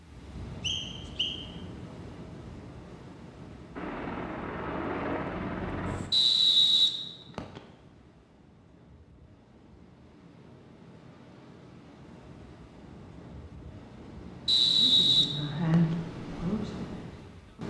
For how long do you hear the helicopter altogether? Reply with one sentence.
You can hear the helicopter for 2 seconds altogether.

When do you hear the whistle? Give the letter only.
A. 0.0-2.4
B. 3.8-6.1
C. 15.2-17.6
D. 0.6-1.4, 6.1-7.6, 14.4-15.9
D.